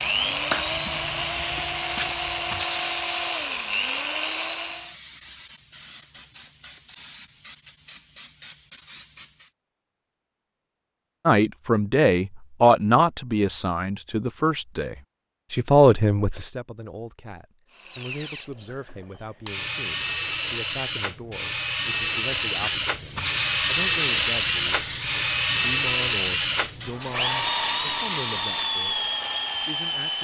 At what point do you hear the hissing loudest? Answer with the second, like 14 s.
24 s.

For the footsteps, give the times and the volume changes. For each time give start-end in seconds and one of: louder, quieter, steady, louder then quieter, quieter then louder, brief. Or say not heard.
not heard.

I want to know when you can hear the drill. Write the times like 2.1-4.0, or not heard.
0.0-5.0, 17.7-30.1.